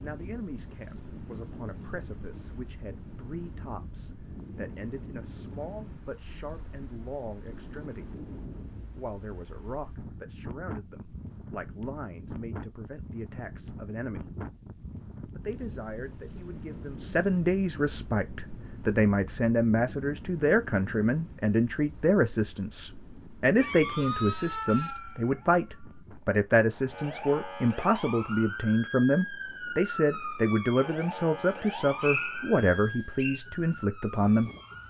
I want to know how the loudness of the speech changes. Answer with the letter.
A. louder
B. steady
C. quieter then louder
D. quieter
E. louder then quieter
A.